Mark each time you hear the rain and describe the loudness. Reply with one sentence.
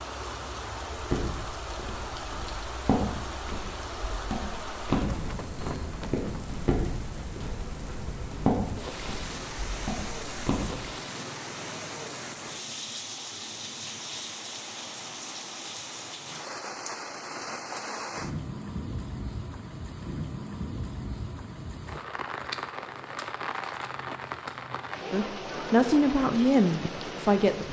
The rain can be heard from 0.0 to 27.6 s, at a steady volume.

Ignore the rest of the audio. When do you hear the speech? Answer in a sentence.
You can hear the speech from 25.1 to 27.6 s.